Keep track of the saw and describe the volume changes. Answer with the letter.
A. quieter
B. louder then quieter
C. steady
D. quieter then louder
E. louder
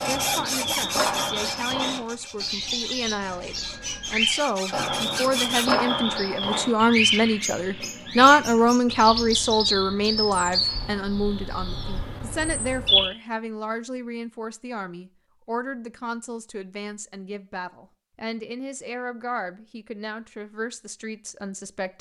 D.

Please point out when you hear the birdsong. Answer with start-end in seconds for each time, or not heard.
0.0-13.1.